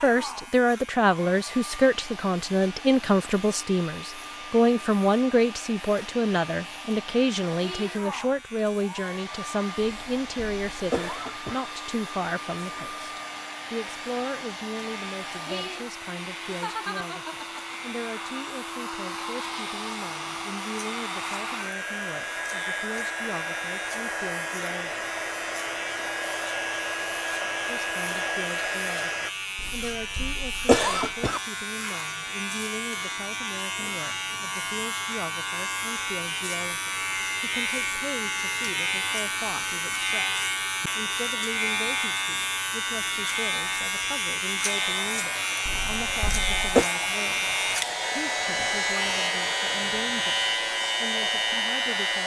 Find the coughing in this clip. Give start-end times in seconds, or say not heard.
9.8-11.7, 29.6-31.4, 45.6-46.9.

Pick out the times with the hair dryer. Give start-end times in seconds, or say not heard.
0.0-29.3, 44.8-52.2.